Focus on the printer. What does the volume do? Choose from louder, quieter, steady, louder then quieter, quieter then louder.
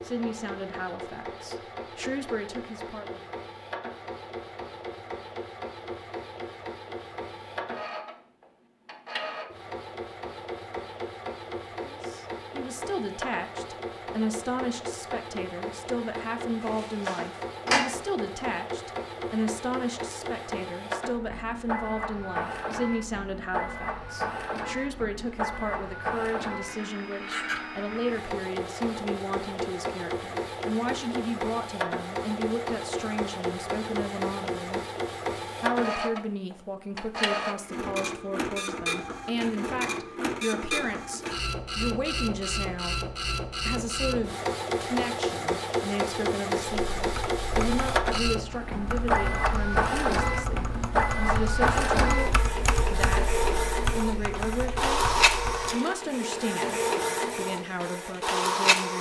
louder.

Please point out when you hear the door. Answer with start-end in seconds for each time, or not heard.
16.6-17.9.